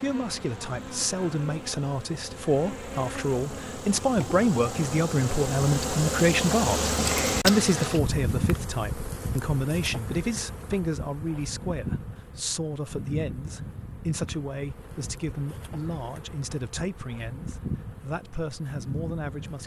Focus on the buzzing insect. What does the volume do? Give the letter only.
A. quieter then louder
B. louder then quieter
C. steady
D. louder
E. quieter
B.